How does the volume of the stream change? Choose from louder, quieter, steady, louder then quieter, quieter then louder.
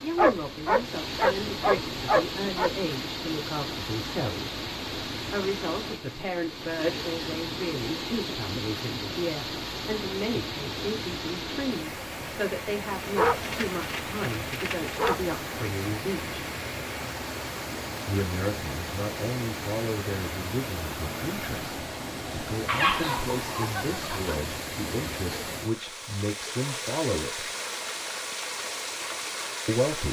steady.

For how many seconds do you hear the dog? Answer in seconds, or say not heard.
6 s.